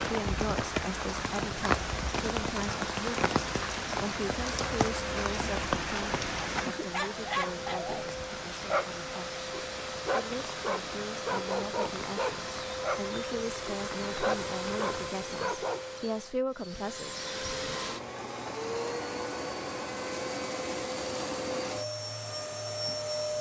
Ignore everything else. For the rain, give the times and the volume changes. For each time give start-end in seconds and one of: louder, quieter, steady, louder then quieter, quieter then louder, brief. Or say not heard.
0.0-15.1 quieter.